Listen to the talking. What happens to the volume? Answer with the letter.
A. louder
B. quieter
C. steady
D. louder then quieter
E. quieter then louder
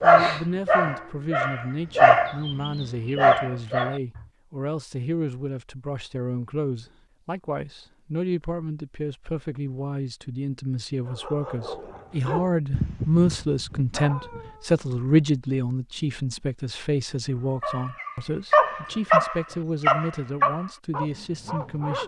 D.